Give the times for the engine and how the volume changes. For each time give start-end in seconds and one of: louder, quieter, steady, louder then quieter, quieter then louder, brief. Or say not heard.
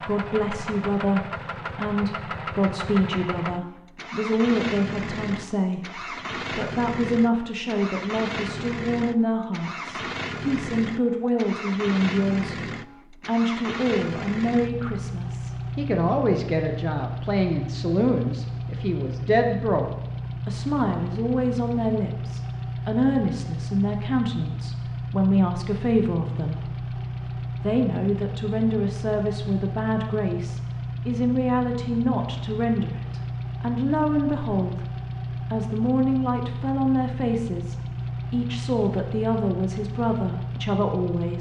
0.0-41.3 steady.